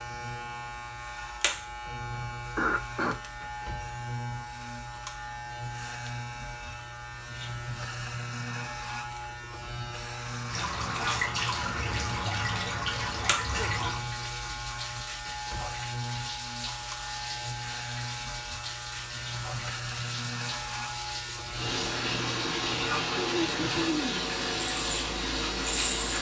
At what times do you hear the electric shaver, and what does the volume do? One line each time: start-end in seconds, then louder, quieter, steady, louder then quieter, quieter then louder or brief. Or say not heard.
0.0-26.1 steady.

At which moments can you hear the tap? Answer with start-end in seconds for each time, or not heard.
10.4-26.1.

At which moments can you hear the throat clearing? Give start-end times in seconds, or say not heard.
2.5-3.1, 13.1-14.6, 22.7-24.3.